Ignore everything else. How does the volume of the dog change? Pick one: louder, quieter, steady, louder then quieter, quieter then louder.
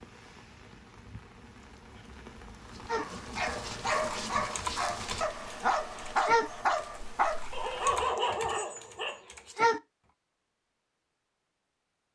steady.